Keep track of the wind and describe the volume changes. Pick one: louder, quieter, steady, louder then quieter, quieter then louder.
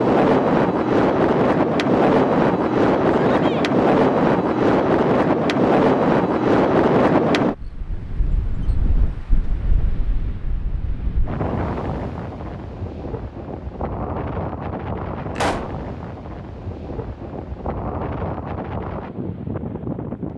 quieter.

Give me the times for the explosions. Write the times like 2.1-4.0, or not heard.
15.3-15.8.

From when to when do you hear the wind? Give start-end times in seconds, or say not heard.
0.0-20.3.